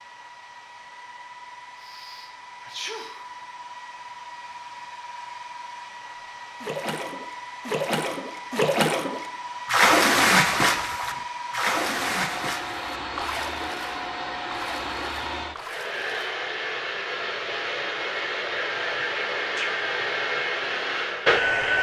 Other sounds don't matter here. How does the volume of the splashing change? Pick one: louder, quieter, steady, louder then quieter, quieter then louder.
louder then quieter.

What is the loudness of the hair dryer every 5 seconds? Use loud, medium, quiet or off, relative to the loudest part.
quiet, quiet, medium, medium, loud.